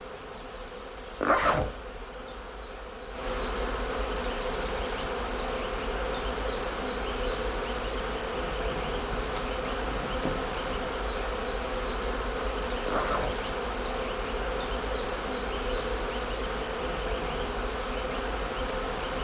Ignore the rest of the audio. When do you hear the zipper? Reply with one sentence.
The zipper can be heard from 1.2 to 1.7 s, from 8.7 to 10.4 s and from 12.8 to 13.3 s.